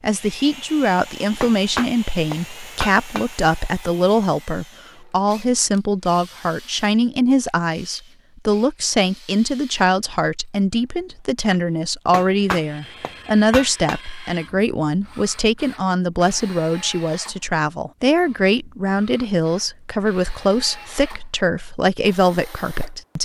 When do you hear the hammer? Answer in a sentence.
The hammer can be heard from 1.4 to 3.2 s and from 12.1 to 14.0 s.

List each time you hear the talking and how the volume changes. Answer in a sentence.
You can hear the talking from 0.0 to 23.2 s, at a steady volume.